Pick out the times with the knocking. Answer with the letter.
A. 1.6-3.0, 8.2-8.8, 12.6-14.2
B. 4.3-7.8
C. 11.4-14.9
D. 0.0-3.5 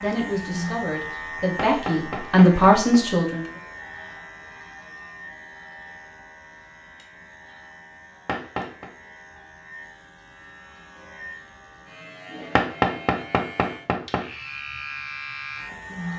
A.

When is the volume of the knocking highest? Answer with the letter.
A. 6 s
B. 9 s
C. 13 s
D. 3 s
C.